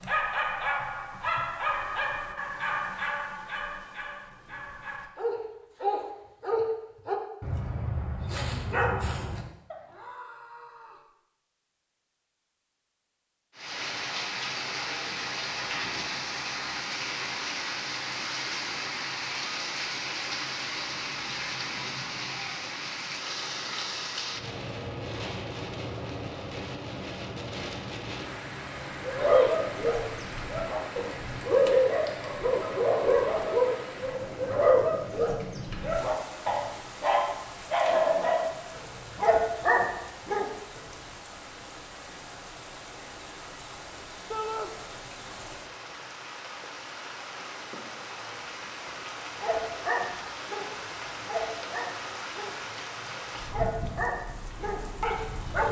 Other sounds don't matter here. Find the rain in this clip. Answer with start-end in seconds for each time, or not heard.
13.6-55.6.